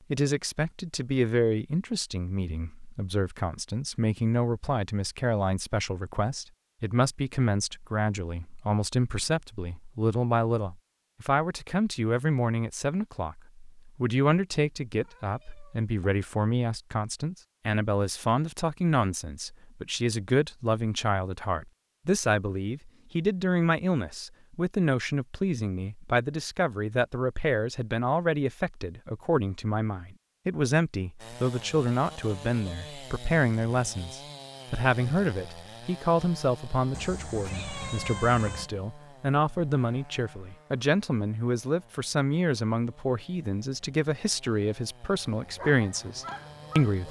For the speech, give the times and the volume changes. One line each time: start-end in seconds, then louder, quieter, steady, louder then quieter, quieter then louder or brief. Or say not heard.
0.1-47.0 steady.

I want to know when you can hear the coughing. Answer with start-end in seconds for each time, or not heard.
not heard.